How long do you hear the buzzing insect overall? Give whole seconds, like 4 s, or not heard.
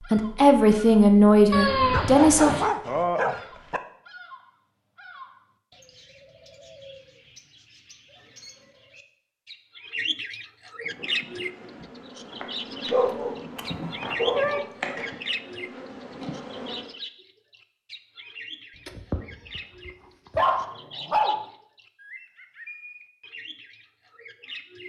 6 s.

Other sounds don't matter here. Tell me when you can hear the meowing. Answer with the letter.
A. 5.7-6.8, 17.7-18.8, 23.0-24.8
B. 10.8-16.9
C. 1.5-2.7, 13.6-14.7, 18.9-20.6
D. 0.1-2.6
C.